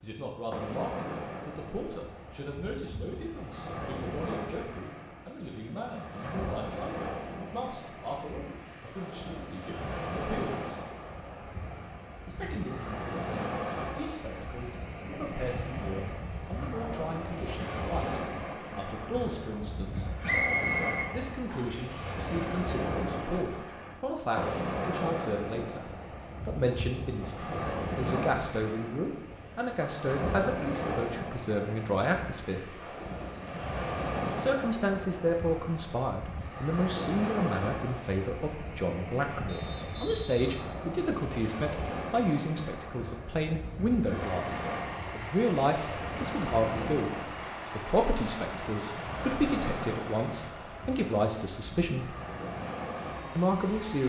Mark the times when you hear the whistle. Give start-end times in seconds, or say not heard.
20.2-21.9, 39.5-40.8.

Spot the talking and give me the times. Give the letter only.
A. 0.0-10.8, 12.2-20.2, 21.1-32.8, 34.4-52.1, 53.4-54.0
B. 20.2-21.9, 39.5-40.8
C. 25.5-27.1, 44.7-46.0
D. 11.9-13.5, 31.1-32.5
A.